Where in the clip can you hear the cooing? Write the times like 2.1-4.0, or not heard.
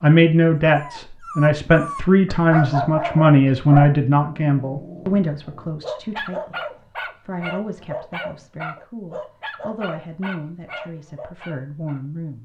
not heard.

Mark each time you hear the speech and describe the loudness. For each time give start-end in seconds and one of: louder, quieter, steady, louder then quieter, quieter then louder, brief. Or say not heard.
0.0-12.4 quieter.